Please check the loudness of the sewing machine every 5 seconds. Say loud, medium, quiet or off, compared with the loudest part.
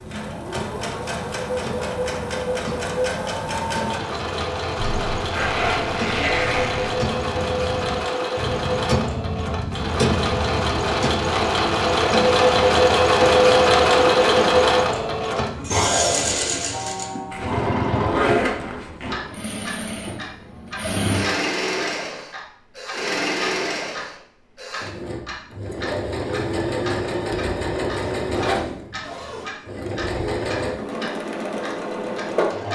medium, medium, loud, medium, medium, medium, medium.